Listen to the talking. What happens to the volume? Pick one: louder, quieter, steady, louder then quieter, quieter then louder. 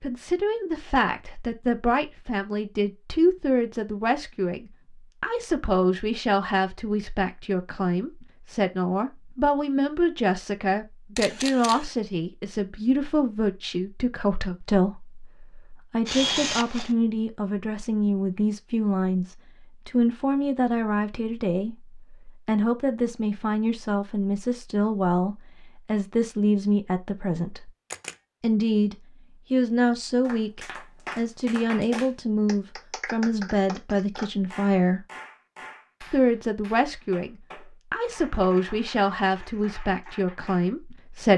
steady.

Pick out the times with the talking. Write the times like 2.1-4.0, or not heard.
0.0-27.7, 28.4-35.0, 36.0-41.3.